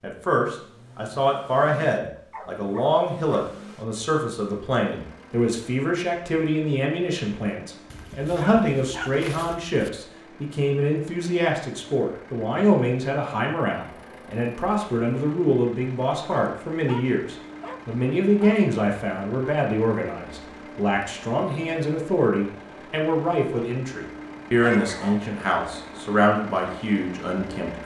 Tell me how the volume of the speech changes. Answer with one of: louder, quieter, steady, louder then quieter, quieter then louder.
steady.